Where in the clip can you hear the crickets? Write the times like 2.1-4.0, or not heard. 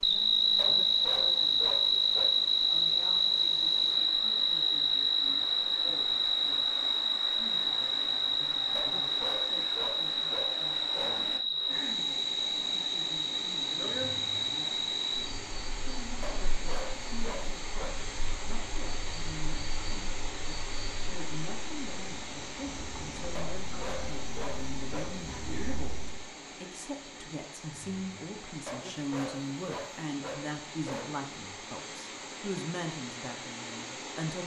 0.0-26.3.